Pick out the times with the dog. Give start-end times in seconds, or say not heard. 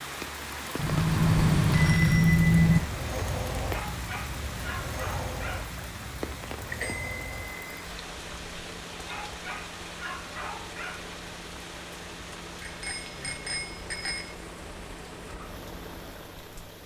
3.7-5.7, 9.1-11.0.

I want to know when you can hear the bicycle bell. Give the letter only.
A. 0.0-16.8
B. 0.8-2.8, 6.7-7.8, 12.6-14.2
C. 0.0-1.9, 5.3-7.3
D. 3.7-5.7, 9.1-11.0
B.